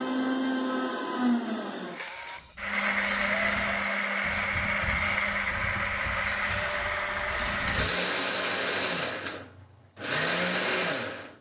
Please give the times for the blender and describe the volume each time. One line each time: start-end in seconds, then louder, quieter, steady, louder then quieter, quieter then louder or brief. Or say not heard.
0.0-11.3 steady.